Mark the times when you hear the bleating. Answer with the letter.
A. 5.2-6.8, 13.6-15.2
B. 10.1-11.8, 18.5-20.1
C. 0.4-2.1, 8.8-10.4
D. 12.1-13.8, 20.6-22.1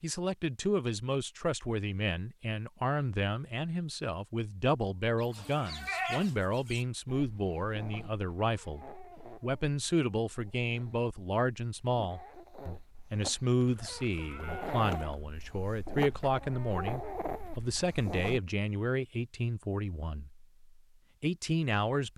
A.